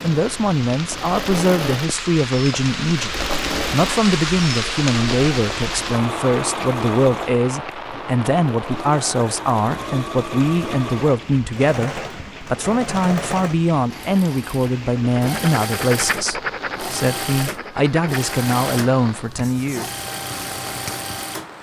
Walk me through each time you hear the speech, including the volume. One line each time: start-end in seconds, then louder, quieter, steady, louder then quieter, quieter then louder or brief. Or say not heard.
0.0-19.9 steady.